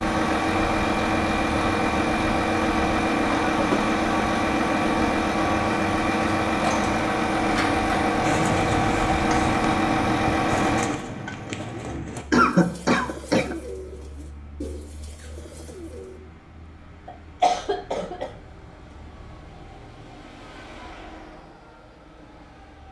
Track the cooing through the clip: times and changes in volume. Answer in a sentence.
You can hear the cooing from 8.2 to 16.2 s, getting quieter.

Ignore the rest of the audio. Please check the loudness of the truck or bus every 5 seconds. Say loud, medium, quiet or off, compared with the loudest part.
loud, loud, medium, quiet, quiet.